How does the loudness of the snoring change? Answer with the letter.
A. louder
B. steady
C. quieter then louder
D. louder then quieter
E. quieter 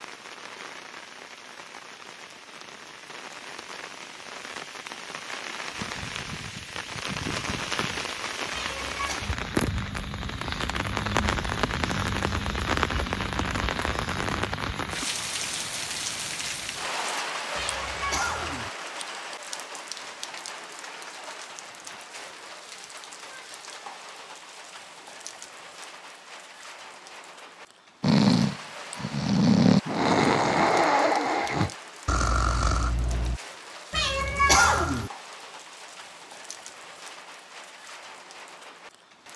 D.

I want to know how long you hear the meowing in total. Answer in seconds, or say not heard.
3 s.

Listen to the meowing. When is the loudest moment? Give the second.
35 s.